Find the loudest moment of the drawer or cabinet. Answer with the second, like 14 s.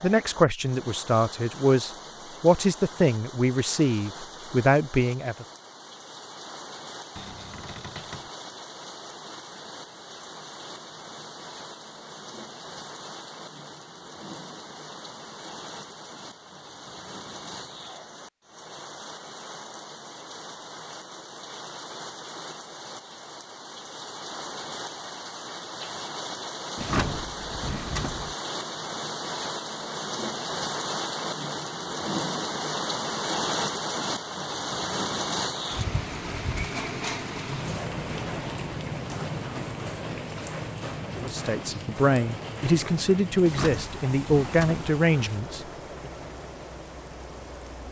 27 s.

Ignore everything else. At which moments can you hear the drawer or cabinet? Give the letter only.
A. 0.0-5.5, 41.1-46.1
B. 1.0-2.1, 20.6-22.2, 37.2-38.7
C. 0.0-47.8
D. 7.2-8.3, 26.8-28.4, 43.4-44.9
D.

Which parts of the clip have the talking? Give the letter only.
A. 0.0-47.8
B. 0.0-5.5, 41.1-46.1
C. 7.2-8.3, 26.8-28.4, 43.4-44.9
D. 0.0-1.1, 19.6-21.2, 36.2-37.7
B.